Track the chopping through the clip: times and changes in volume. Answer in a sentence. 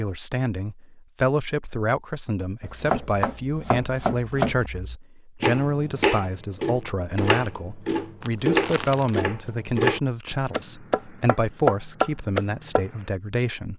You can hear the chopping from 2.6 to 12.8 s, getting louder.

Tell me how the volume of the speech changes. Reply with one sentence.
The volume of the speech stays about the same.